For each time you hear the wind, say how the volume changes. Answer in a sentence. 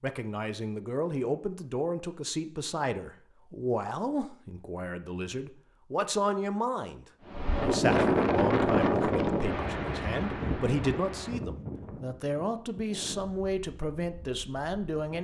You can hear the wind from 7.2 to 15.2 s, getting quieter.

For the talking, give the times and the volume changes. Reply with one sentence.
You can hear the talking from 0.0 to 15.2 s, at a steady volume.